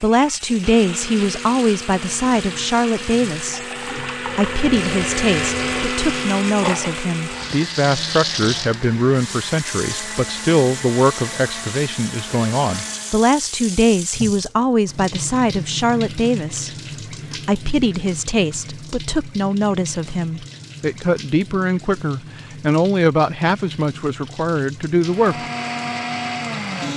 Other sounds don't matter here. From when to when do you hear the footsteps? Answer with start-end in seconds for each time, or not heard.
not heard.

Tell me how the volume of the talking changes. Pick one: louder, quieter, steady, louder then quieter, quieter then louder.
steady.